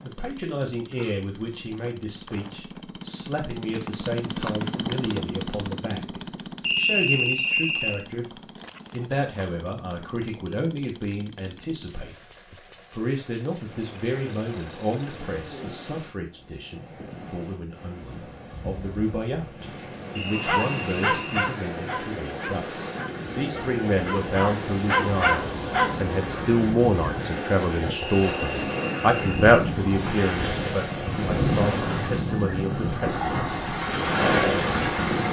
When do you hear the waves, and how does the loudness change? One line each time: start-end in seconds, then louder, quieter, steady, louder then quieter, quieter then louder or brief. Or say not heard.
13.7-35.2 louder.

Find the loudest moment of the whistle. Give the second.
7 s.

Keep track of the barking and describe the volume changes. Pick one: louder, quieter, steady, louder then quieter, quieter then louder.
quieter then louder.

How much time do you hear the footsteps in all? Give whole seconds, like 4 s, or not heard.
not heard.